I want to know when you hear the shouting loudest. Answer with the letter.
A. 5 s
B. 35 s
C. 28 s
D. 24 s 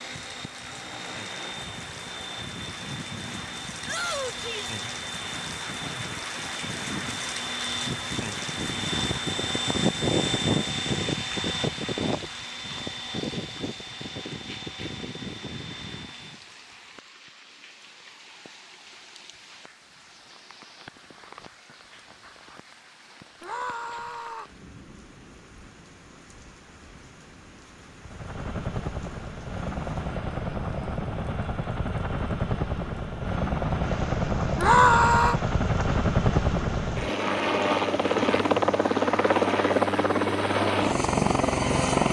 B.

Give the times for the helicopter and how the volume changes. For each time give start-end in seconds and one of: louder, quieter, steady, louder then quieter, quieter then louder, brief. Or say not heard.
0.0-16.4 louder then quieter
28.0-42.0 louder.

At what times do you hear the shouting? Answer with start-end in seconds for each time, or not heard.
3.9-4.7, 23.4-24.4, 34.5-35.4.